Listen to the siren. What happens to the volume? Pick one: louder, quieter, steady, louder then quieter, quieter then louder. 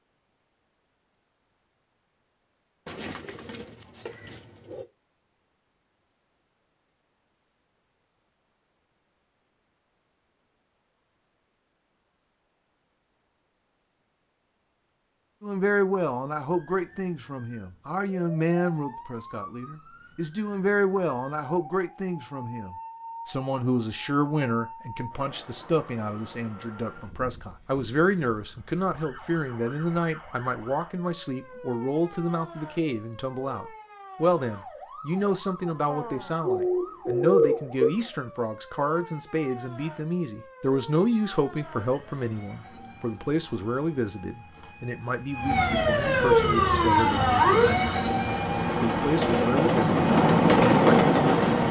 louder.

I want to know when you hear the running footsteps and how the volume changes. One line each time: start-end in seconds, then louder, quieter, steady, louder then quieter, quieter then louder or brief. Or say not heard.
not heard.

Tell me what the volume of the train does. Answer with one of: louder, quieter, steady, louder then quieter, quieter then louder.
louder.